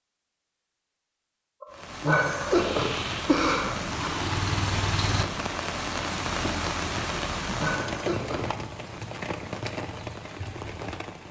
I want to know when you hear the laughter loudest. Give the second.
3 s.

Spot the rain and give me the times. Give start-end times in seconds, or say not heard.
1.7-11.2.